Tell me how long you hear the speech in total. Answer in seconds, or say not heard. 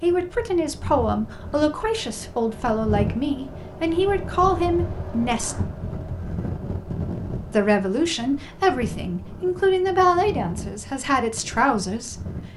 10 s.